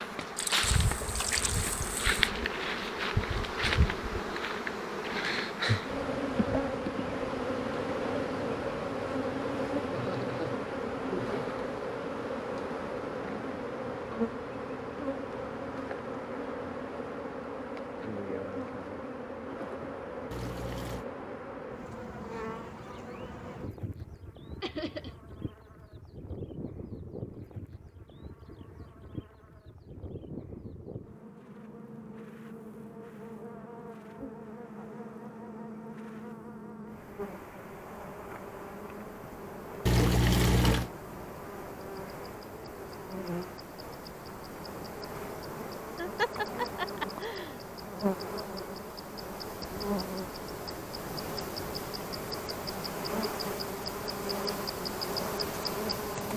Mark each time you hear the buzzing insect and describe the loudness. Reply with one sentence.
You can hear the buzzing insect from 0.0 to 56.3 s, getting quieter then louder.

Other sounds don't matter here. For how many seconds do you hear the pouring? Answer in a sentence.
You can hear the pouring for 4 seconds altogether.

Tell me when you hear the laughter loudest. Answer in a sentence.
The volume of the laughter peaks at 46 seconds.